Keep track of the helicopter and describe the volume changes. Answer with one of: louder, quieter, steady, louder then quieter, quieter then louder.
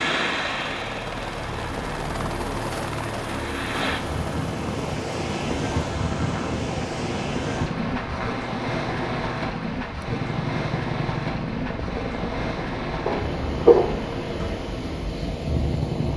steady.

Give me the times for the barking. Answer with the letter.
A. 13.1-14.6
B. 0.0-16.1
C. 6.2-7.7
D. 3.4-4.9
A.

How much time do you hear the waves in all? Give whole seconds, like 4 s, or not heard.
16 s.